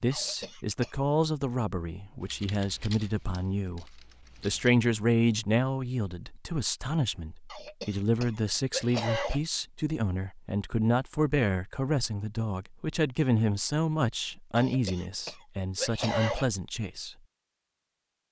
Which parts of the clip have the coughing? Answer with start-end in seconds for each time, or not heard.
0.1-1.0, 7.5-9.4, 14.6-16.4.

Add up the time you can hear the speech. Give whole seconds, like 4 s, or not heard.
17 s.